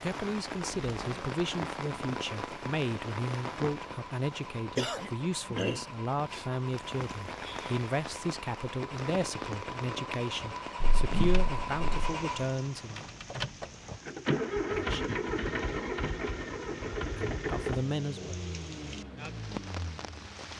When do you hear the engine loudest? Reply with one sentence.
The volume of the engine peaks at 15 seconds.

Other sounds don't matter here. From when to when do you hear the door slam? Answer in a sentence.
The door slam can be heard from 10.8 to 12.2 s.